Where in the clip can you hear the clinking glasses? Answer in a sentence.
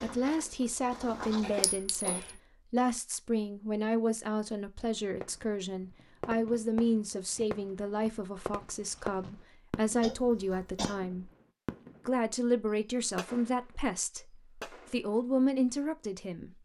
You can hear the clinking glasses from 1.6 to 2.4 s.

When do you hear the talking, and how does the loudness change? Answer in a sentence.
You can hear the talking from 0.0 to 11.3 s, at a steady volume; and from 12.1 to 16.5 s, getting quieter then louder.